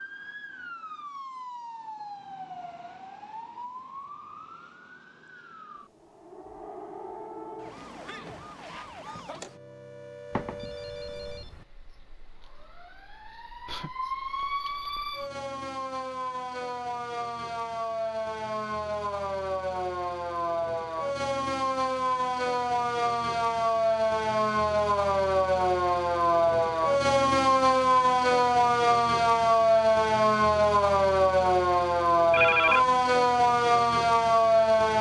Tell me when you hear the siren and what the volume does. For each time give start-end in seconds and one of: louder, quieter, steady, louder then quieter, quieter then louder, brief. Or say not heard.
0.0-34.9 louder.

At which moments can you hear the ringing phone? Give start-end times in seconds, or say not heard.
10.3-11.6, 32.3-32.9.